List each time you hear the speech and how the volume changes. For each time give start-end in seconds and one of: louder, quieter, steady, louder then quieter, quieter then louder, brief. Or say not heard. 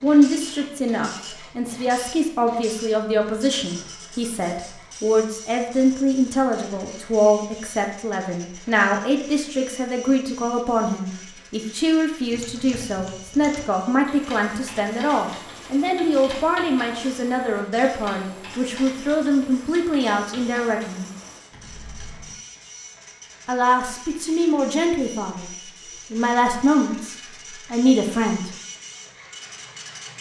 0.0-21.1 steady
23.4-25.5 brief
26.1-28.5 brief.